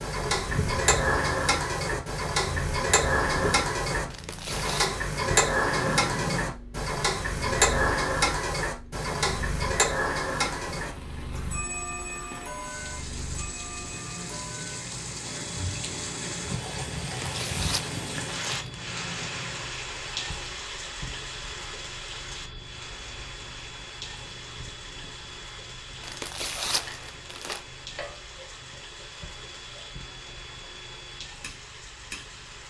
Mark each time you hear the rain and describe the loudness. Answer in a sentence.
You can hear the rain from 10.5 to 32.6 s, getting louder then quieter.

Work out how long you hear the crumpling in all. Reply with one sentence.
You can hear the crumpling for 4 seconds altogether.